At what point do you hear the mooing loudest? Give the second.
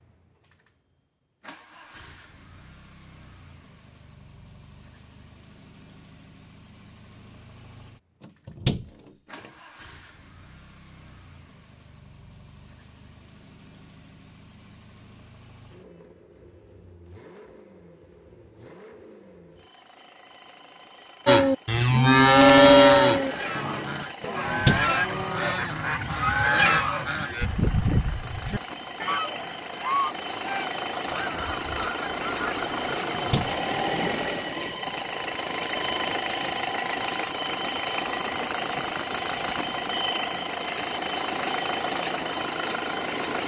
23 s.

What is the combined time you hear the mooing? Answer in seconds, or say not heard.
6 s.